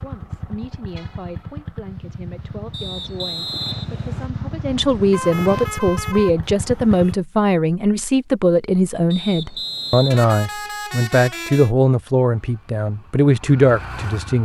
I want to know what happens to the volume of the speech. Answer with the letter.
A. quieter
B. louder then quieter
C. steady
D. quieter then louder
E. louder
E.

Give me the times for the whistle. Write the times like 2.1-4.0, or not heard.
2.7-4.3, 9.1-10.2.